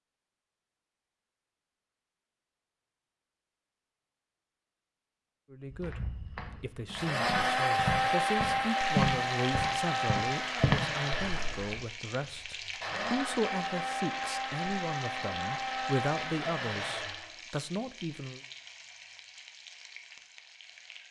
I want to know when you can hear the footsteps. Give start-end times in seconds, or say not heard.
5.7-11.8.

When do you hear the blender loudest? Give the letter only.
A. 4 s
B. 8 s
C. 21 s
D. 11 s
B.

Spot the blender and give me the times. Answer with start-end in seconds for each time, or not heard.
7.0-17.4.